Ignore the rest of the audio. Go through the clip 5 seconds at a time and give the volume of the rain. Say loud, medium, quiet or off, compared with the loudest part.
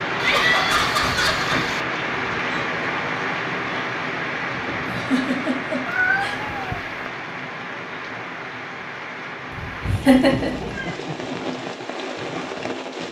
loud, medium, medium.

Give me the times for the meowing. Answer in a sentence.
You can hear the meowing from 0.1 to 1.8 s, from 5.8 to 7.0 s and from 9.9 to 11.0 s.